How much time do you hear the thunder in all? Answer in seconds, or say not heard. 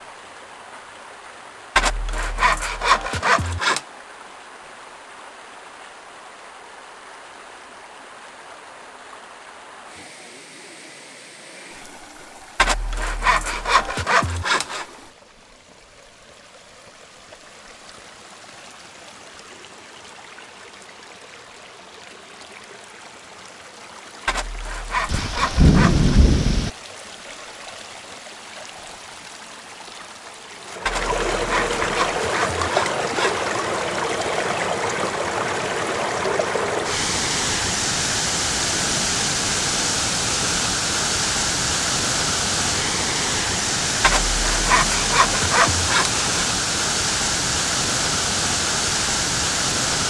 2 s.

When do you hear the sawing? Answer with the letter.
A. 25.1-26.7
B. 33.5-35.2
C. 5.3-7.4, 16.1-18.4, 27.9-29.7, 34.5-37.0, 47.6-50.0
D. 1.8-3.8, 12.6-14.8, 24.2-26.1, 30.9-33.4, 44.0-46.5
D.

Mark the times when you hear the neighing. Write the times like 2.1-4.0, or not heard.
not heard.